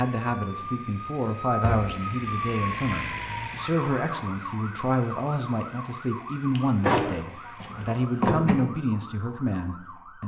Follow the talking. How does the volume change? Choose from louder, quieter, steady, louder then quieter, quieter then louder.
steady.